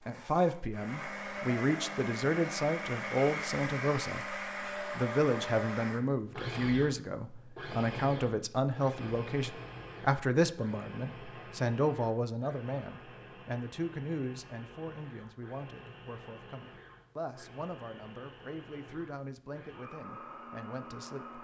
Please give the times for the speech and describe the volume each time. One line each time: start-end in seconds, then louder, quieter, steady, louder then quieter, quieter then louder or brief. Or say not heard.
0.1-21.3 quieter.